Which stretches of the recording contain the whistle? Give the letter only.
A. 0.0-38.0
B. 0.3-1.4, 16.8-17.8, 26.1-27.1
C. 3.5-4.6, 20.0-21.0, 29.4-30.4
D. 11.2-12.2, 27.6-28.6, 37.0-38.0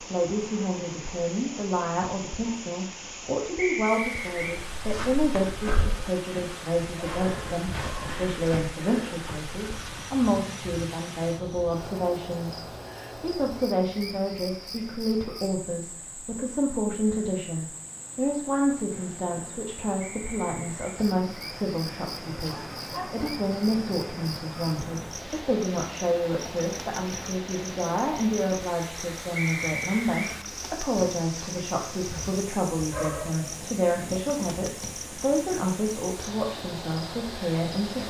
C.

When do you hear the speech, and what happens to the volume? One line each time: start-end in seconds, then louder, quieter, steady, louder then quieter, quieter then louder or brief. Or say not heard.
0.0-38.0 steady.